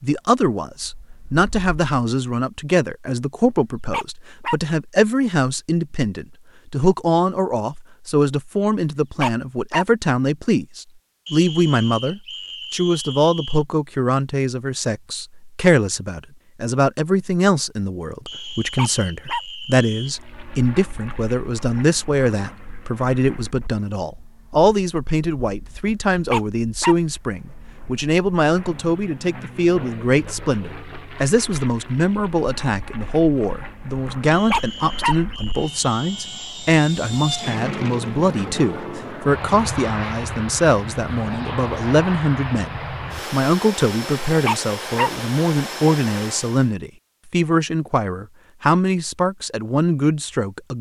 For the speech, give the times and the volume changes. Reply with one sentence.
The speech can be heard from 0.0 to 50.7 s, at a steady volume.